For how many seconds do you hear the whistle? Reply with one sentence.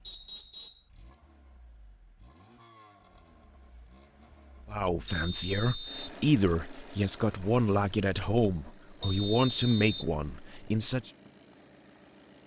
The whistle can be heard for 3 seconds in total.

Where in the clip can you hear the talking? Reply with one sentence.
The talking can be heard from 4.7 to 11.1 s.